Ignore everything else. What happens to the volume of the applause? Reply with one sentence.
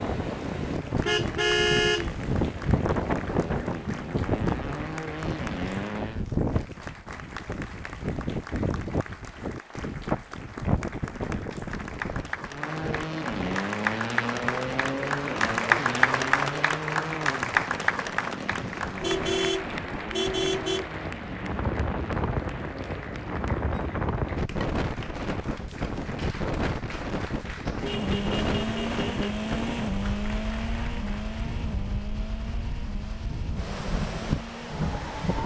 The loudness of the applause goes up, then down.